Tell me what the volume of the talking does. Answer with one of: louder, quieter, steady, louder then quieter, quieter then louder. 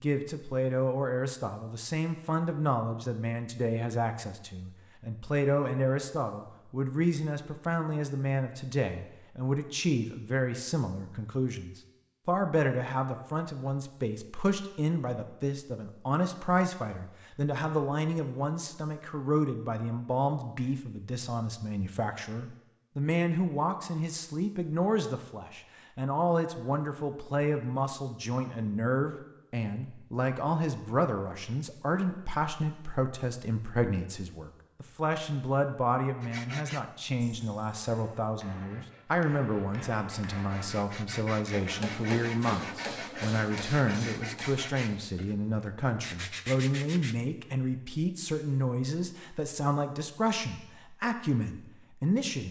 steady.